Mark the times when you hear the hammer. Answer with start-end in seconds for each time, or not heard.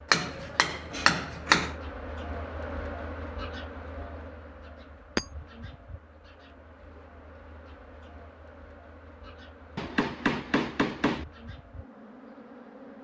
0.1-1.7, 9.8-11.2.